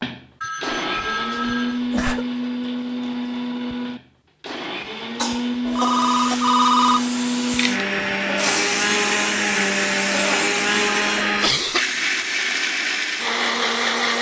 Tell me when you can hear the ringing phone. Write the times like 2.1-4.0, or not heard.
0.4-1.8, 5.7-7.0, 10.8-11.5.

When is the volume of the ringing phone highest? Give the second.
7 s.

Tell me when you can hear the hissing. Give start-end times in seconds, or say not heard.
5.7-14.1.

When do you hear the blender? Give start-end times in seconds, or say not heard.
0.0-14.1.